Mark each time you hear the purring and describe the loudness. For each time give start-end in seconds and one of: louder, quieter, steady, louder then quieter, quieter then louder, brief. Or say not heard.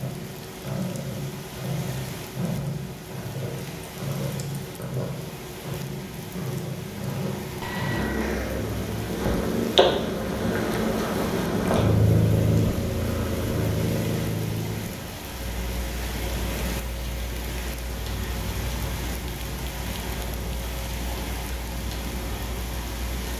0.0-23.3 louder then quieter.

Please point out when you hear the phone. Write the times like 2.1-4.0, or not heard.
7.6-8.3.